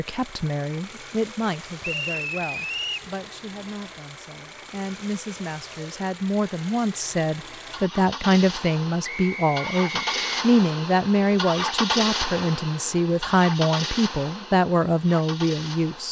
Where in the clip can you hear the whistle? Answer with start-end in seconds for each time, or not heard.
1.8-3.1, 9.0-10.4.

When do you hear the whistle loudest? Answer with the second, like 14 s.
2 s.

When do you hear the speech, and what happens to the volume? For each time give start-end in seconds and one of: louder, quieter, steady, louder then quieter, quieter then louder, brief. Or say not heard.
0.0-16.0 louder.